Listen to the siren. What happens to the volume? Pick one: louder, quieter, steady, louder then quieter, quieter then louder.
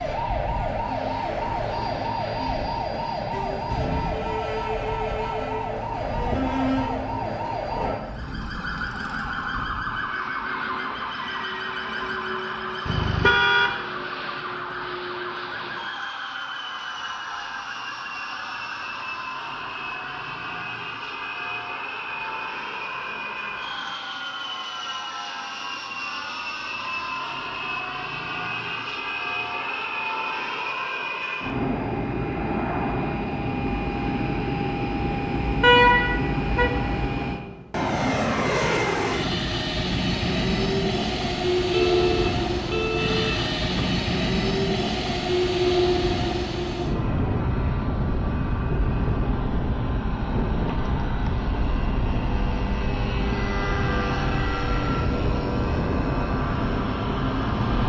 quieter.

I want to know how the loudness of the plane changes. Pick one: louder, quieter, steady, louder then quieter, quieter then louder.
louder.